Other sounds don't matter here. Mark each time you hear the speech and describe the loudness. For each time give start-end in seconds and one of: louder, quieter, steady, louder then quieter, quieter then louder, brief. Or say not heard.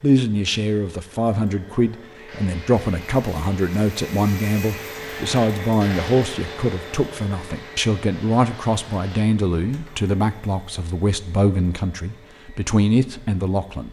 0.0-13.8 steady.